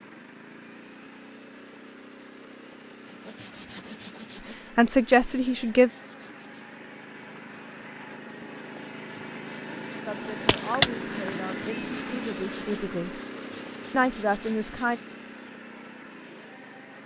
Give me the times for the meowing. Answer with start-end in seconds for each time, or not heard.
10.4-11.8.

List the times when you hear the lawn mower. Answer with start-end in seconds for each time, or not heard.
0.0-17.0.